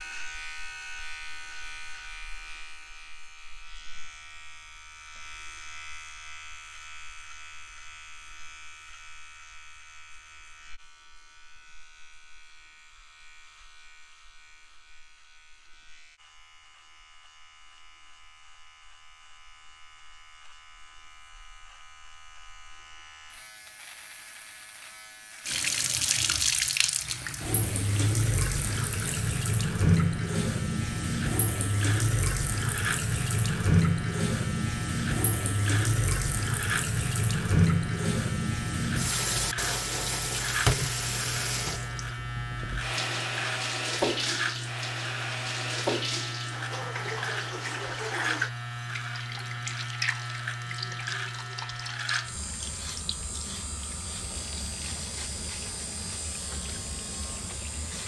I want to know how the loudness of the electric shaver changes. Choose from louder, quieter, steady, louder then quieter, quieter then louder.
quieter then louder.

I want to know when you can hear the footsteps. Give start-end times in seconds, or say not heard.
not heard.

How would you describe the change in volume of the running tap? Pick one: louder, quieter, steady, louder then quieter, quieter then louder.
quieter.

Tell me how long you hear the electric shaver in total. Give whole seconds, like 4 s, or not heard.
58 s.